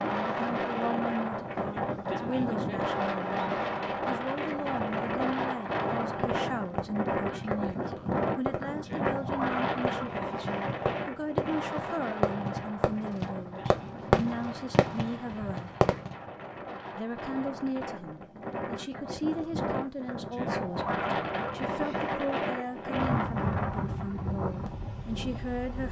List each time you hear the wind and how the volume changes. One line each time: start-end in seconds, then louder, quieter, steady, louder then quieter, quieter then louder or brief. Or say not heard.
0.0-25.8 quieter then louder.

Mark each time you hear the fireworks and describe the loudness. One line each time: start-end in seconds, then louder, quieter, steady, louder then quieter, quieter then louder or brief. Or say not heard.
5.2-16.1 louder.